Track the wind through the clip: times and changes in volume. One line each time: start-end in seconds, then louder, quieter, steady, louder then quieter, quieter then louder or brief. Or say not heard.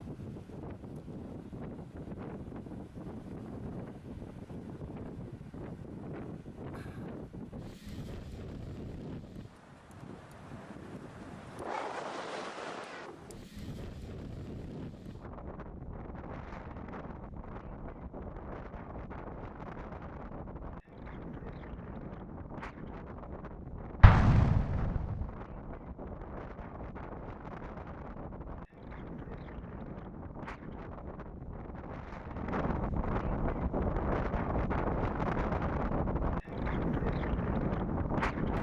0.0-38.5 louder.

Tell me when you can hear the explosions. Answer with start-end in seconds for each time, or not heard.
24.0-25.3.